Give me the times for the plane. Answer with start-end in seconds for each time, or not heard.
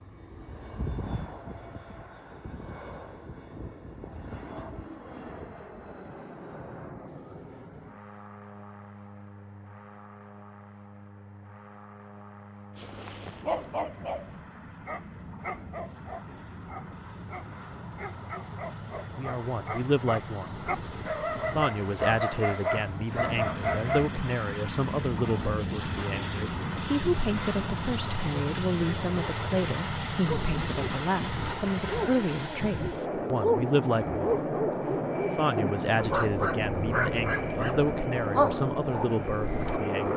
0.0-40.1.